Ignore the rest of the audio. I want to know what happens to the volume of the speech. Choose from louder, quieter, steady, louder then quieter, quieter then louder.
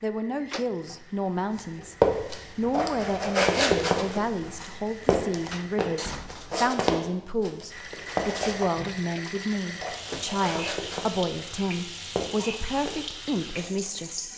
steady.